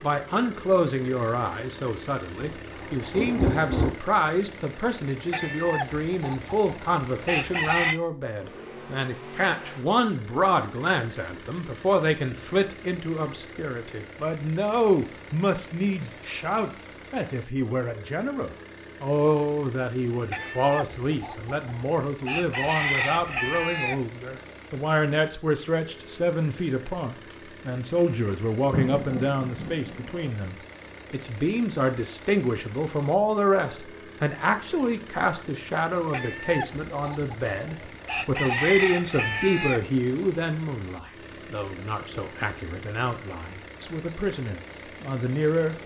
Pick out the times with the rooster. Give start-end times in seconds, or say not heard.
5.3-8.0, 20.3-24.1, 36.1-39.9.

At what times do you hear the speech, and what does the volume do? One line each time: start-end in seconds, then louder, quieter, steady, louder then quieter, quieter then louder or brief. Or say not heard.
0.0-45.8 steady.